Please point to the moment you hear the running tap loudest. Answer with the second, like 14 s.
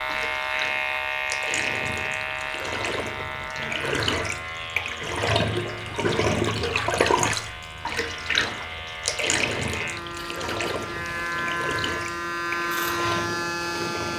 7 s.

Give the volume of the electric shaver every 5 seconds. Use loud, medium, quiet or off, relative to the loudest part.
loud, medium, loud.